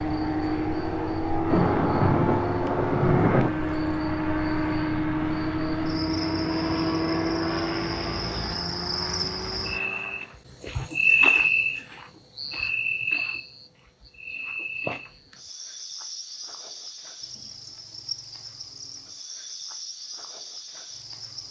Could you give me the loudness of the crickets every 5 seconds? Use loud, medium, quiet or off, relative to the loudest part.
quiet, medium, loud, quiet, quiet.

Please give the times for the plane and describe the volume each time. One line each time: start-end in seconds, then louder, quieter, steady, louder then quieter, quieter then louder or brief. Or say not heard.
0.0-10.4 quieter.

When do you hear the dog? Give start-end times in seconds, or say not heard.
not heard.